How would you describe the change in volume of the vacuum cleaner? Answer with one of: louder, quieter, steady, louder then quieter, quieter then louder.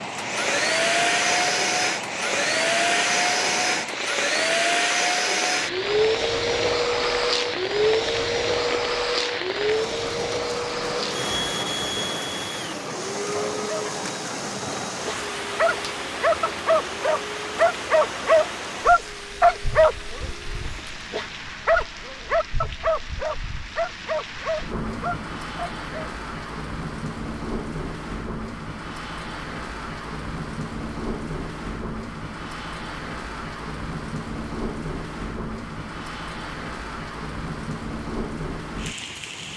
quieter.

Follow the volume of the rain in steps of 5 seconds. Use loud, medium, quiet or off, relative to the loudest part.
loud, loud, loud, loud, medium, loud, loud, loud.